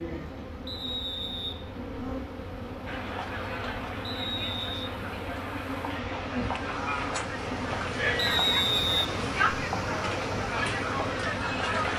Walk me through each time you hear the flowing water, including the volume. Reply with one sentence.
You can hear the flowing water from 0.0 to 11.9 s, getting louder.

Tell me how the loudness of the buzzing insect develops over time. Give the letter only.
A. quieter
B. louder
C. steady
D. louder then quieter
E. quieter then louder
C.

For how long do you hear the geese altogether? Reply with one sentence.
The geese can't be heard in this clip.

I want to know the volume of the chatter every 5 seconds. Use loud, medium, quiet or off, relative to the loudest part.
medium, loud, loud.